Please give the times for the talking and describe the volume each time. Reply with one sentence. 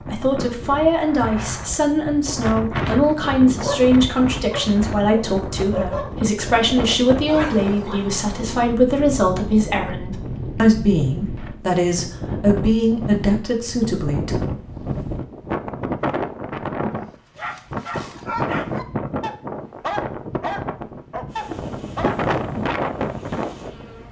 The talking can be heard from 0.0 to 14.3 s, at a steady volume.